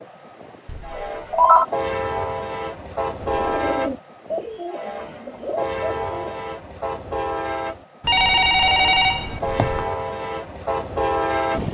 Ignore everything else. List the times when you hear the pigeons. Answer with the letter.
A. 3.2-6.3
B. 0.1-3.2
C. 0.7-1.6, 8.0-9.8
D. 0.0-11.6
A.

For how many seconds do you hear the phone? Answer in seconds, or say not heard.
3 s.